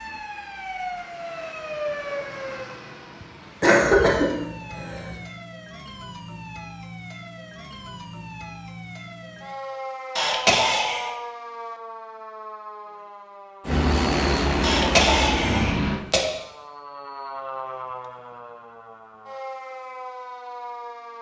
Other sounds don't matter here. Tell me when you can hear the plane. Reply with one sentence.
You can hear the plane from 13.7 to 16.1 s.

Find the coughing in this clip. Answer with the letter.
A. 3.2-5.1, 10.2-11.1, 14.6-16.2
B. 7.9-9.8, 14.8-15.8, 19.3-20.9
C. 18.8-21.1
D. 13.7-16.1
A.